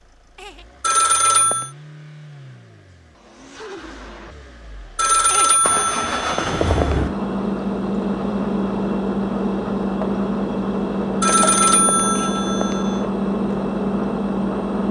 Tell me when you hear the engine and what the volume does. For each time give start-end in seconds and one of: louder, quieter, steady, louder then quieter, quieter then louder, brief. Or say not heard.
0.0-14.8 louder.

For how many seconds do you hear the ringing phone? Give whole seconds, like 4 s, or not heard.
5 s.